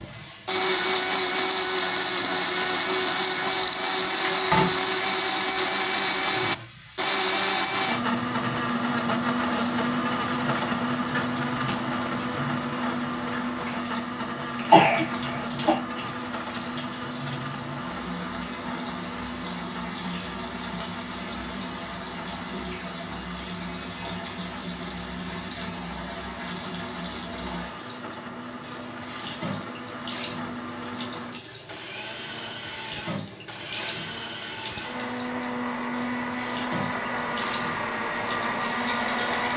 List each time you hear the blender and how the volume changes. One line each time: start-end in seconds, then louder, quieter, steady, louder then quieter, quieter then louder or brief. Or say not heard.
0.0-39.5 quieter then louder.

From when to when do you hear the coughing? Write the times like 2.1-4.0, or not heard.
14.6-15.8.